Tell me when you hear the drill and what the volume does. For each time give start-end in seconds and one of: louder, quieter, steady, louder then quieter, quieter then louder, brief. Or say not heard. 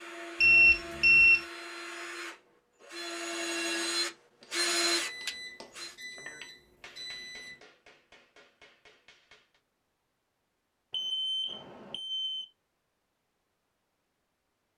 0.0-6.0 louder.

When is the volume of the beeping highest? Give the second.
1 s.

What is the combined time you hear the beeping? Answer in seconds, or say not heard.
5 s.